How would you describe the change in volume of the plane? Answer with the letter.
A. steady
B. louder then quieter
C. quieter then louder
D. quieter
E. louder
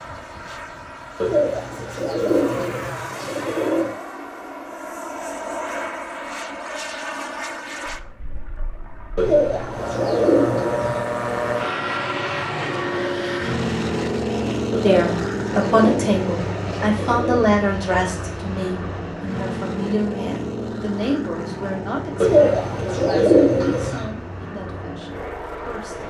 B.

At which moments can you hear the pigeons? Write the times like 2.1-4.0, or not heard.
1.2-4.0, 9.2-11.0, 14.7-17.6, 22.2-24.1.